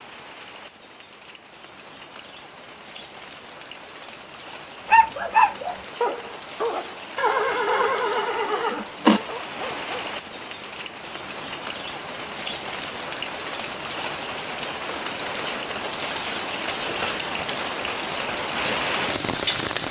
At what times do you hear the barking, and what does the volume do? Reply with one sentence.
You can hear the barking from 4.8 to 10.1 s, getting quieter.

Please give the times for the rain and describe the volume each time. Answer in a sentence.
You can hear the rain from 0.0 to 19.8 s, getting louder.